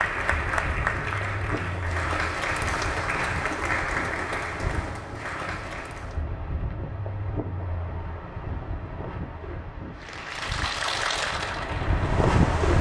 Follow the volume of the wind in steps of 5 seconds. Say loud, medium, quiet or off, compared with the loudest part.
medium, medium, loud.